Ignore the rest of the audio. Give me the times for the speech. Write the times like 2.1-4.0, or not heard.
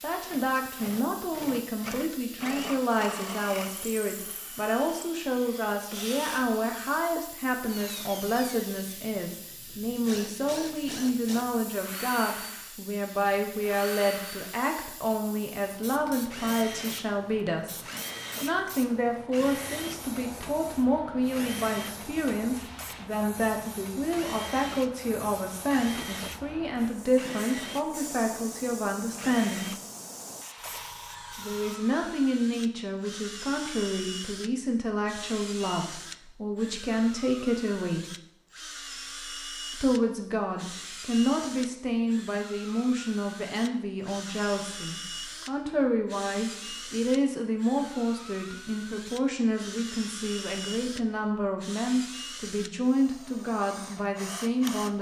0.0-17.8, 18.4-29.8, 31.3-38.1, 39.8-54.9.